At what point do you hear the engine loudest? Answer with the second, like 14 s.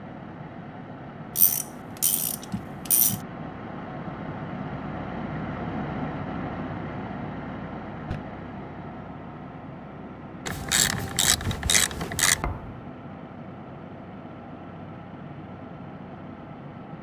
6 s.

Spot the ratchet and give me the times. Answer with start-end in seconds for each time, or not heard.
1.4-3.2, 10.4-12.4.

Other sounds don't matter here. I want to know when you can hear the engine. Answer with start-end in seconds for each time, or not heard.
0.0-16.9.